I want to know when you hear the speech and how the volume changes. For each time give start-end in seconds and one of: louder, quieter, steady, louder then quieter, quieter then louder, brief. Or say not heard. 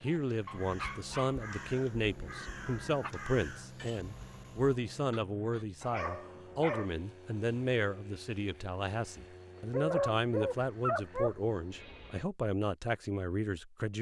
0.0-13.9 steady.